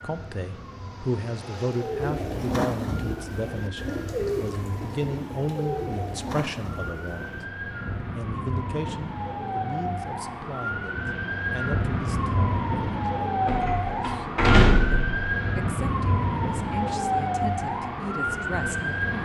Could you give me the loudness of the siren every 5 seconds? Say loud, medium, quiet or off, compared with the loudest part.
quiet, medium, loud, loud.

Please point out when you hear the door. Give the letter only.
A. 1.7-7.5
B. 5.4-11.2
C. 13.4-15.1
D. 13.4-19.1
C.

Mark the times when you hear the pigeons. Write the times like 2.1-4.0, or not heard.
1.7-7.5.